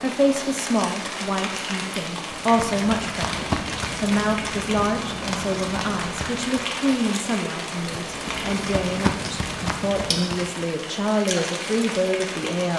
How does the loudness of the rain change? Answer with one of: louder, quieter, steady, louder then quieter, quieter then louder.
steady.